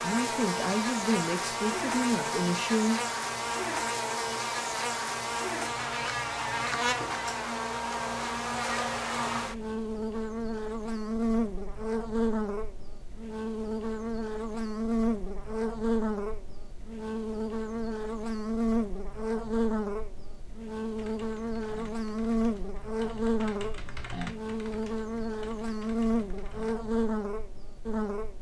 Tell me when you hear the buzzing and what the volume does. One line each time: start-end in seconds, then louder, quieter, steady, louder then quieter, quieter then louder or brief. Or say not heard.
0.0-28.3 steady.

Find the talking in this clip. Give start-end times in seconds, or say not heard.
0.0-3.0.